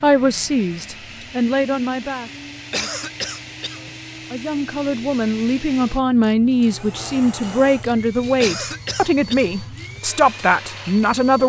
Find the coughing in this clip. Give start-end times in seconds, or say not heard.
2.7-4.0, 8.4-9.6.